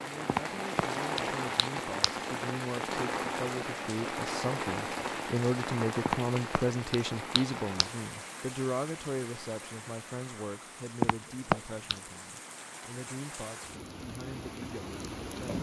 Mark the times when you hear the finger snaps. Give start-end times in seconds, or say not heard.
0.2-2.1, 6.0-7.9, 11.0-12.0.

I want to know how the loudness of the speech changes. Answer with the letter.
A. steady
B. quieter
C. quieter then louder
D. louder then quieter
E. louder
D.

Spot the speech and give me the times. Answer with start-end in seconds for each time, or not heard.
0.0-15.5.